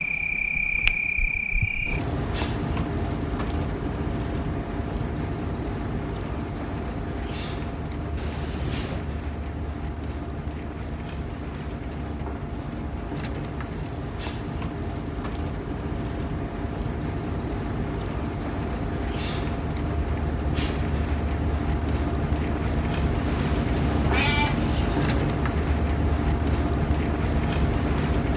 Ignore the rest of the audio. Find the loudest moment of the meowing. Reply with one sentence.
The loudest moment of the meowing is at 24 seconds.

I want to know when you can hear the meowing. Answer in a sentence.
You can hear the meowing from 8.2 to 9.1 s and from 23.2 to 25.2 s.